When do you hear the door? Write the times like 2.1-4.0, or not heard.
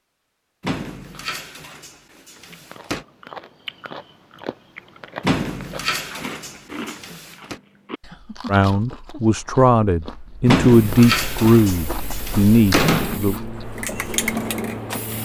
0.6-3.0, 5.2-7.6, 10.4-13.2.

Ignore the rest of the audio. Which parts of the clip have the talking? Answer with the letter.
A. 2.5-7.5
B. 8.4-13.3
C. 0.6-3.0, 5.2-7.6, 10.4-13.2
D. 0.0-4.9
B.